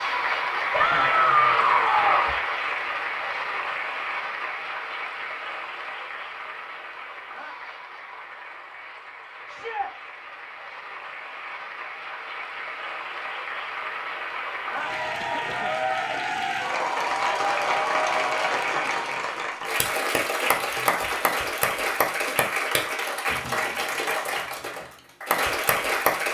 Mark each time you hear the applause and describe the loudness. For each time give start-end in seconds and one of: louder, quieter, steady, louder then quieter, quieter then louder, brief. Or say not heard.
0.0-26.2 quieter then louder.